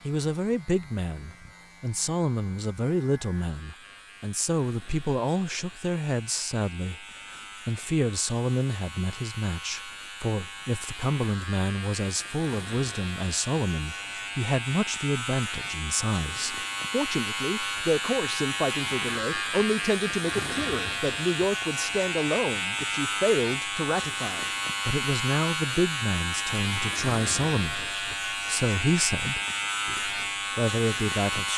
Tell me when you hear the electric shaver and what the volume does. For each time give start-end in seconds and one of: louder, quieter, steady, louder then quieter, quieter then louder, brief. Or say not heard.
0.0-31.5 louder.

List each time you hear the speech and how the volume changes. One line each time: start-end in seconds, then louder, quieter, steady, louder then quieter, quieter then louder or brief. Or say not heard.
0.0-31.5 steady.